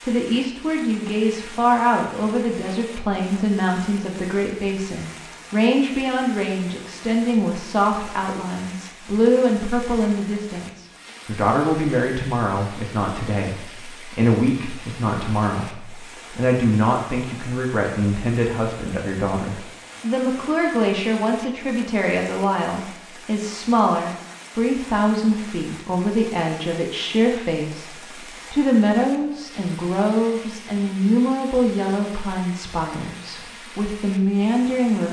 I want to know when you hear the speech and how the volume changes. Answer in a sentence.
The speech can be heard from 0.0 to 35.0 s, at a steady volume.